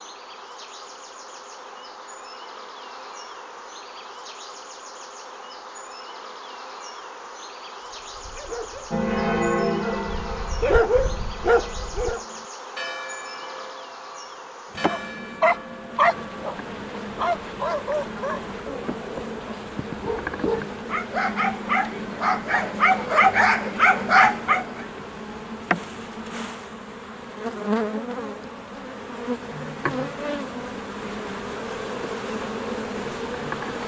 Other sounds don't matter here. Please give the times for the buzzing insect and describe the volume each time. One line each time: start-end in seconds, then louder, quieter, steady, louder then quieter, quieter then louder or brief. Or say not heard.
0.0-33.8 louder.